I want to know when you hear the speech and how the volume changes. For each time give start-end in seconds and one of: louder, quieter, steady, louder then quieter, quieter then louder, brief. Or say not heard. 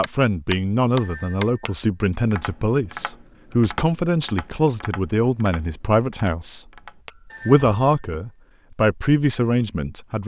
0.0-6.7 steady
7.5-10.2 brief.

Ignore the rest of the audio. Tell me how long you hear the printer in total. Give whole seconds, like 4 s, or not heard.
not heard.